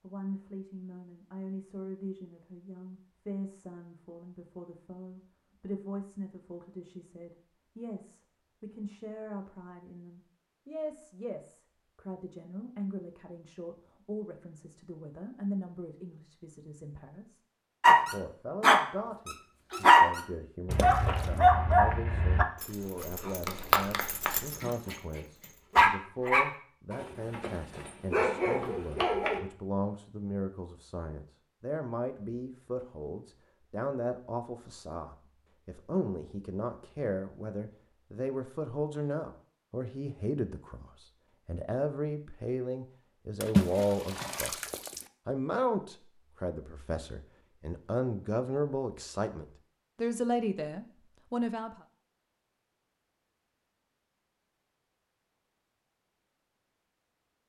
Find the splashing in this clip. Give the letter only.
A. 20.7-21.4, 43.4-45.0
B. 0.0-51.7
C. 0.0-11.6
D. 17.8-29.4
A.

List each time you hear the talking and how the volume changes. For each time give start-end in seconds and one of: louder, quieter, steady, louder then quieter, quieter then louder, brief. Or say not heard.
0.0-51.7 louder.